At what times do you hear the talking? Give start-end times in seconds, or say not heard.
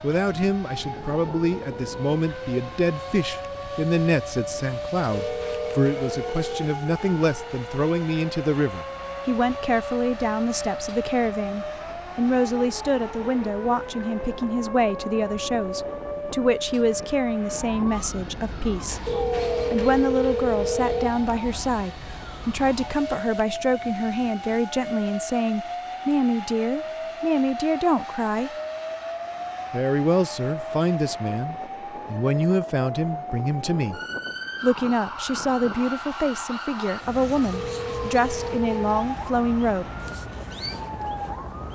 0.0-19.0, 19.7-28.5, 29.7-34.0, 34.6-39.9.